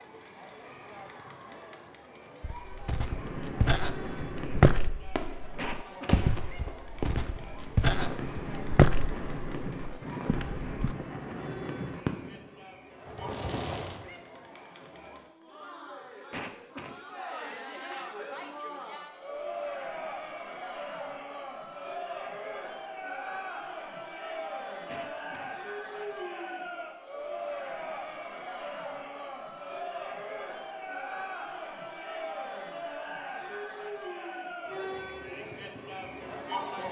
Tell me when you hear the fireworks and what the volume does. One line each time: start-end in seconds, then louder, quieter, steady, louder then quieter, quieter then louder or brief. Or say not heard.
3.0-14.1 steady.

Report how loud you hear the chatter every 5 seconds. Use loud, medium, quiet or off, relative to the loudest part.
medium, medium, medium, loud, loud, loud, loud, loud.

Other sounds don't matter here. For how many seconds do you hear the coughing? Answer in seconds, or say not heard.
2 s.